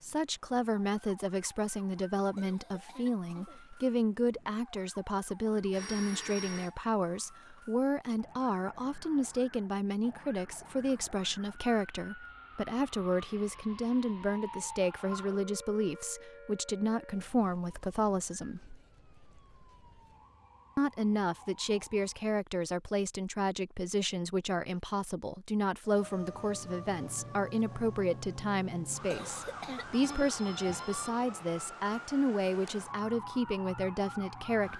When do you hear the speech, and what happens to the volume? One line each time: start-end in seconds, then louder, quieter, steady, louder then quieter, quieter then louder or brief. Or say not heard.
0.0-18.8 steady
20.8-34.7 steady.